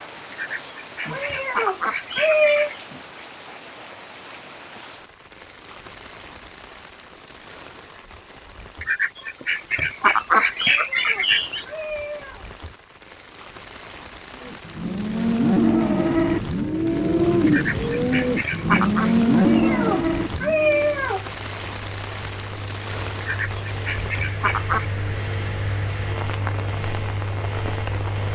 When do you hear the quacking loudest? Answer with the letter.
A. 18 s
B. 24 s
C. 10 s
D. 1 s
C.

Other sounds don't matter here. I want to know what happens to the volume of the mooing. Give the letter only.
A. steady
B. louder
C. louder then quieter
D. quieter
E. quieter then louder
A.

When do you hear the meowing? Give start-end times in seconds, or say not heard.
1.1-2.7, 10.6-12.4, 19.4-21.2.